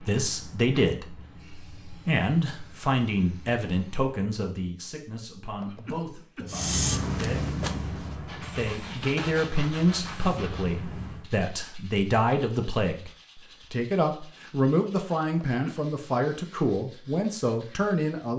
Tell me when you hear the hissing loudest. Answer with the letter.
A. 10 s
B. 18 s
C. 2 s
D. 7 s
D.